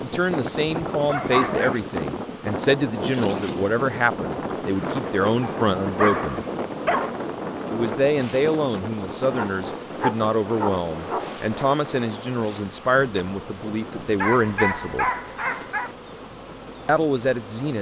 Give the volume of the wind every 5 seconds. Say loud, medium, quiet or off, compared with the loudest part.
loud, loud, medium, quiet.